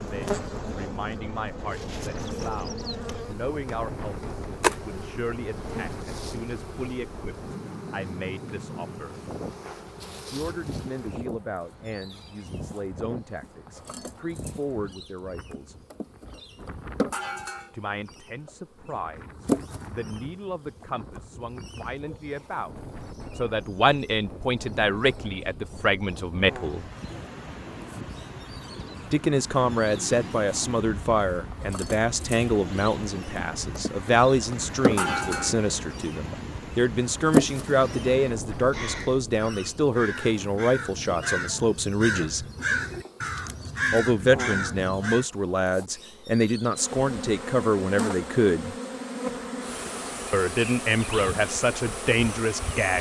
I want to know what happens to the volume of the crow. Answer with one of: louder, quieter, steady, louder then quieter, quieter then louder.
louder.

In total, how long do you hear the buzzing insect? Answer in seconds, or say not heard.
53 s.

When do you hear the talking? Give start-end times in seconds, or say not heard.
0.0-9.2, 10.3-15.8, 17.7-26.9, 29.1-42.5, 43.9-48.8, 50.3-52.9.